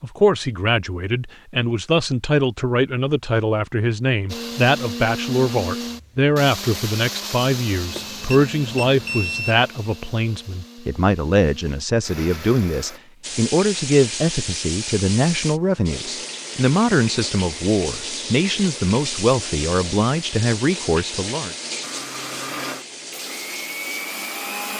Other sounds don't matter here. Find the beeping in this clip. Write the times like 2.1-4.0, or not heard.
7.9-9.6.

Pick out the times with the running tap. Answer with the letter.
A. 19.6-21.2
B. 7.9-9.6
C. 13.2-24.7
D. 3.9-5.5
C.